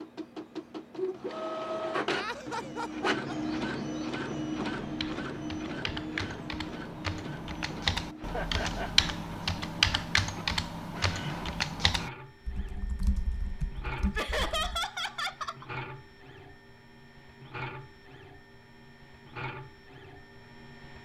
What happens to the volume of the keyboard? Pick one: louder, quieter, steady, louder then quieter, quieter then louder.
louder then quieter.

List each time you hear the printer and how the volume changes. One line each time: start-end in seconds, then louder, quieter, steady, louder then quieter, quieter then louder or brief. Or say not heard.
0.0-21.0 quieter.